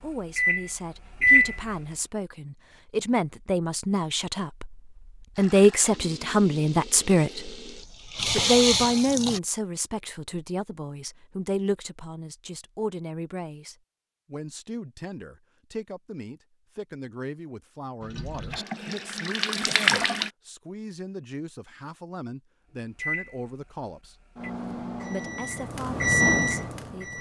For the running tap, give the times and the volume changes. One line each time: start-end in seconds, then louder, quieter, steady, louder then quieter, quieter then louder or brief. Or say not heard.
5.3-9.4 louder
18.0-20.3 brief.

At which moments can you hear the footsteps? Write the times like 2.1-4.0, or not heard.
not heard.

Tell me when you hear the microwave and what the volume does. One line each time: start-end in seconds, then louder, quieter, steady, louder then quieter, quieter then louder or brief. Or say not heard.
0.1-1.6 brief
22.9-27.1 louder.